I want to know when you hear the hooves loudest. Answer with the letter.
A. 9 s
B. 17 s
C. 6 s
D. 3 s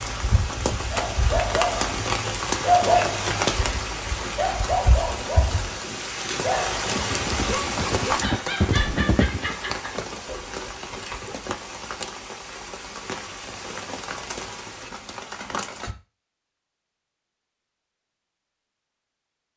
A.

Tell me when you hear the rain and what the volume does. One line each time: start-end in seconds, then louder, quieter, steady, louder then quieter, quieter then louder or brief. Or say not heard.
0.0-15.9 quieter.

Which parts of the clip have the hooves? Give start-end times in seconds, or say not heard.
7.0-9.6.